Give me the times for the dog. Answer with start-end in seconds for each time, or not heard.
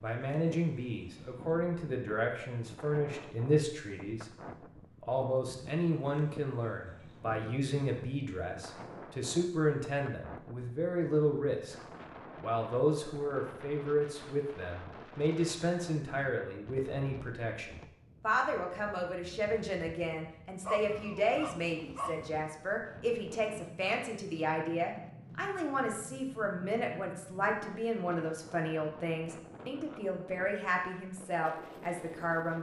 20.6-22.2.